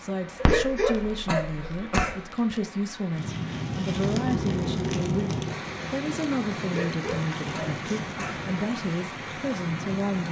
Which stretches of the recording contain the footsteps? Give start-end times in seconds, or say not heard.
not heard.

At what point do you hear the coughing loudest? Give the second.
1 s.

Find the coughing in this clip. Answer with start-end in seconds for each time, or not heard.
0.4-2.2, 6.7-8.4.